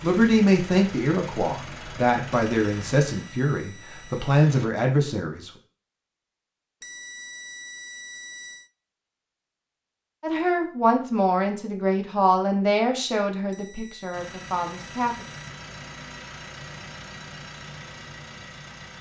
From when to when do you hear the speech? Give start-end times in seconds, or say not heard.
0.0-5.5, 10.2-15.2.